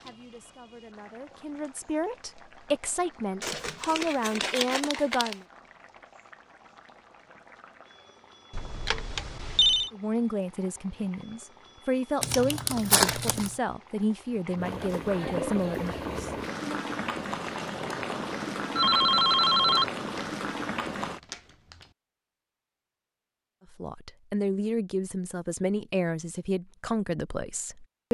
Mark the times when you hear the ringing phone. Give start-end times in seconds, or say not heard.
8.6-9.9, 18.1-19.9.